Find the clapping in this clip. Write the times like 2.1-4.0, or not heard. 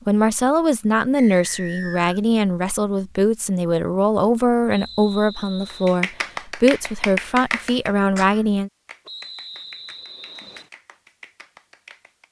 5.7-12.2.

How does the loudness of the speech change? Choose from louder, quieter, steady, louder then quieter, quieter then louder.
steady.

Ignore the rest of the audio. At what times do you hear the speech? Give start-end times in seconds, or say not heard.
0.1-8.7.